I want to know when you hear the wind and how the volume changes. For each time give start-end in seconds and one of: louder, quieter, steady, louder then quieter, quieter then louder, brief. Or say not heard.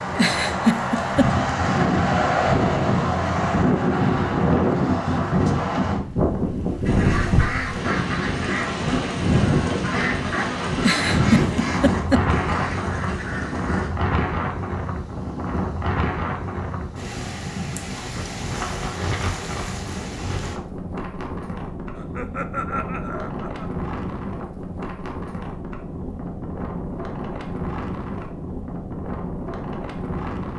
0.0-30.5 quieter.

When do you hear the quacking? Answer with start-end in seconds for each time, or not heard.
6.8-13.9.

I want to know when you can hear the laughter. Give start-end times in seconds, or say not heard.
0.1-1.3, 10.8-12.2, 21.9-23.7.